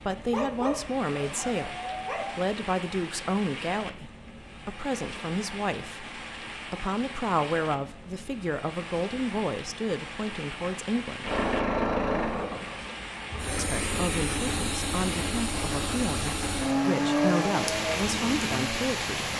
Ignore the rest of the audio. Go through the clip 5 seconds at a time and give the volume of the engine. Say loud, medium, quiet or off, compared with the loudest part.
off, off, loud, loud.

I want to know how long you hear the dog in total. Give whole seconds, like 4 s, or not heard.
2 s.